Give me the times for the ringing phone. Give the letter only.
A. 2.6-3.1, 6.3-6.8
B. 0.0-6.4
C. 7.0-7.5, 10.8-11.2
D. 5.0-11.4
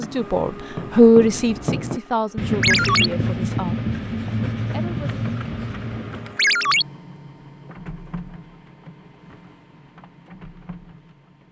A.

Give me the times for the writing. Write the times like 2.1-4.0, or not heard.
0.0-6.4.